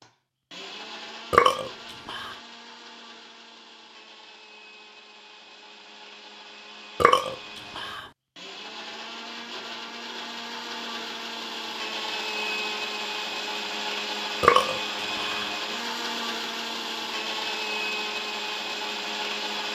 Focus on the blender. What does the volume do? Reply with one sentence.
The loudness of the blender goes up.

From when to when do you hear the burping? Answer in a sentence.
You can hear the burping from 1.3 to 2.4 s, from 7.0 to 8.1 s and from 14.4 to 15.5 s.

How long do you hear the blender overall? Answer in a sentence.
You can hear the blender for 20 seconds altogether.